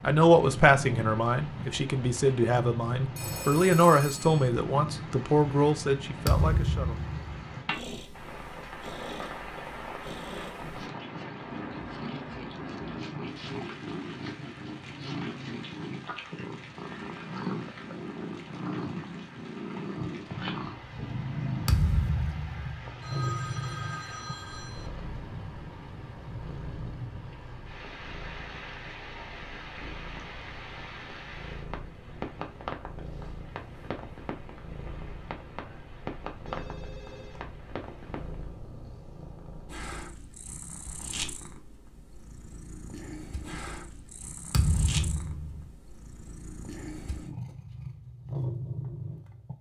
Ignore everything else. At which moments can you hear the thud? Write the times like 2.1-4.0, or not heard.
6.2-7.2, 21.6-22.9, 44.5-45.7.